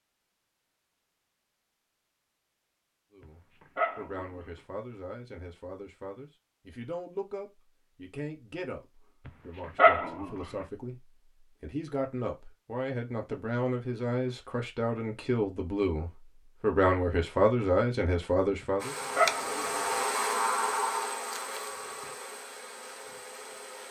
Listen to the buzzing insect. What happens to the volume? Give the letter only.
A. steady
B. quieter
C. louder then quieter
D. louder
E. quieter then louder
B.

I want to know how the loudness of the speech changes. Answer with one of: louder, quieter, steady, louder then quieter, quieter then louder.
louder.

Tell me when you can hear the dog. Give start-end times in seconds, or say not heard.
3.8-4.4, 9.2-10.4, 19.1-19.8.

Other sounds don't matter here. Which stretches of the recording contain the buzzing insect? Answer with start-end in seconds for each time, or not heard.
18.8-23.8.